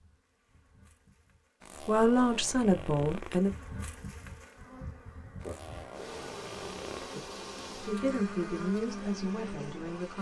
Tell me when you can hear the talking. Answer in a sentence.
The talking can be heard from 1.9 to 3.5 s and from 7.7 to 10.1 s.